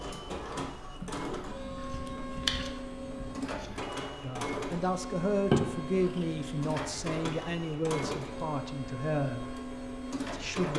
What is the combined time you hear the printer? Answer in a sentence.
The printer can be heard for 11 seconds in total.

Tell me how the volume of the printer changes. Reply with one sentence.
The loudness of the printer stays about the same.